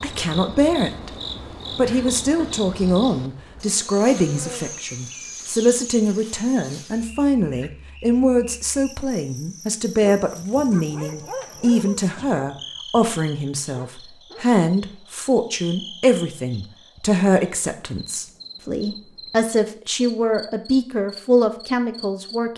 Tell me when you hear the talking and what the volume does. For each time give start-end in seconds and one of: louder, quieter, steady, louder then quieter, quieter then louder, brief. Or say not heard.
0.0-1.1 brief
1.8-22.5 steady.